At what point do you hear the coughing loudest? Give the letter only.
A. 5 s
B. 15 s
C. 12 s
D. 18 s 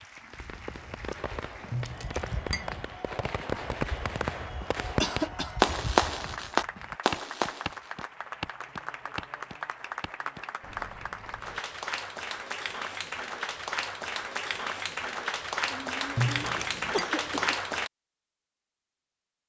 A.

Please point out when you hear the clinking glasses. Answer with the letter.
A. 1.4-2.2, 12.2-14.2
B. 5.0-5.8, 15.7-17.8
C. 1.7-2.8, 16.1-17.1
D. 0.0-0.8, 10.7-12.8
C.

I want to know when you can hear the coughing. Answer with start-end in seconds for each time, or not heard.
5.0-5.8, 15.7-17.8.